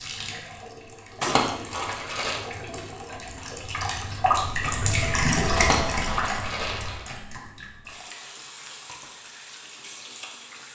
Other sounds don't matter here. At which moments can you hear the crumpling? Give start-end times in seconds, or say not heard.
1.2-2.4, 5.5-7.2.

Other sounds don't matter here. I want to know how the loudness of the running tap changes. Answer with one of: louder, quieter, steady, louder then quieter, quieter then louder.
louder then quieter.